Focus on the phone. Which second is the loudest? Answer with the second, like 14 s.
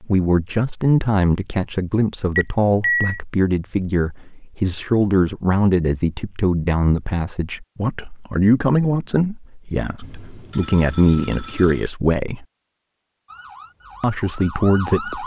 3 s.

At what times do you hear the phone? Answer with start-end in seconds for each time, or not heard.
2.4-3.2, 10.0-11.9.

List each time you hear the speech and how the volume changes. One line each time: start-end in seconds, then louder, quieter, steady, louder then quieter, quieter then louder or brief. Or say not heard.
0.0-12.4 steady
14.0-15.2 brief.